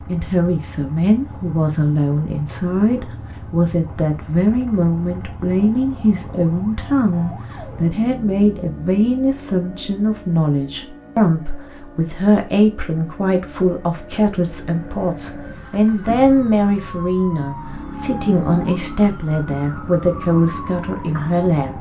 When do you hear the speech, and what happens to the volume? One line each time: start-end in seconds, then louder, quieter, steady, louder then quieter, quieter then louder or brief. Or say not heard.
0.1-21.7 steady.